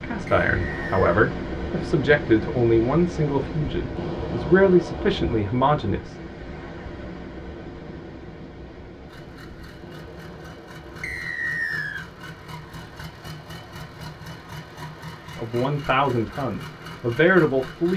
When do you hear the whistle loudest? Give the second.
12 s.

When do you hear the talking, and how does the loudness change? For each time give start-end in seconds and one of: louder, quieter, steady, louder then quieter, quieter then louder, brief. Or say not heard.
0.0-6.2 steady
15.3-17.9 brief.